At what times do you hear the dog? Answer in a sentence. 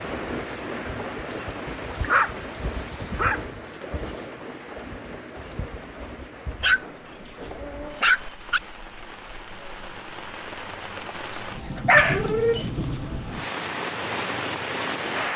The dog can be heard from 1.6 to 3.5 s, from 6.6 to 8.6 s and from 11.2 to 13.0 s.